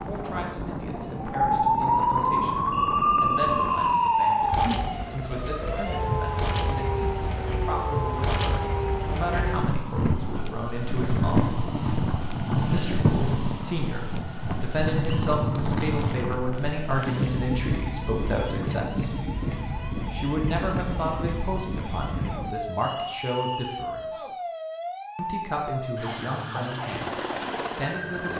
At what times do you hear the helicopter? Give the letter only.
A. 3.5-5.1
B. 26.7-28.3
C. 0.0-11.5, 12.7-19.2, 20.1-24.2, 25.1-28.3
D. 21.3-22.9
B.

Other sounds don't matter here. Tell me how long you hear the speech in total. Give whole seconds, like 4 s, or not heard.
25 s.